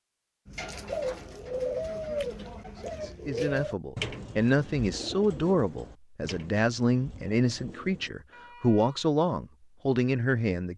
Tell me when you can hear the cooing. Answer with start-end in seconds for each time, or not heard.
0.5-8.1.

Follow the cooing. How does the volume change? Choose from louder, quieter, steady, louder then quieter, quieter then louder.
quieter.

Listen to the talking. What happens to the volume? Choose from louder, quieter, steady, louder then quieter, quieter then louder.
steady.